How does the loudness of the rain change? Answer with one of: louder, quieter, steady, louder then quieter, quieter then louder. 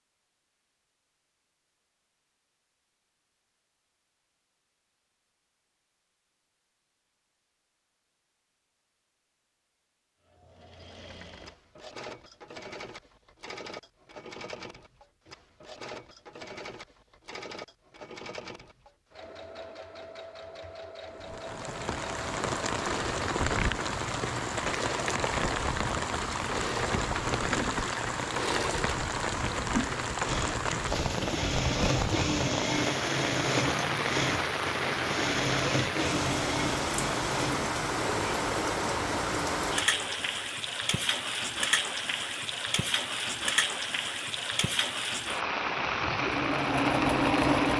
steady.